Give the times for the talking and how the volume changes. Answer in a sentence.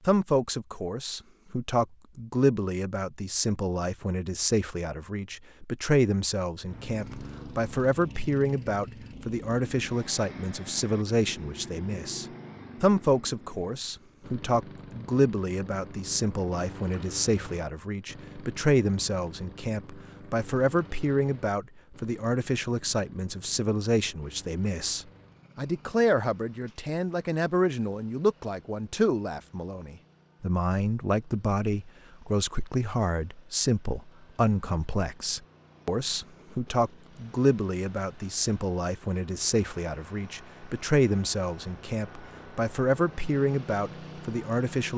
You can hear the talking from 0.1 to 44.9 s, at a steady volume.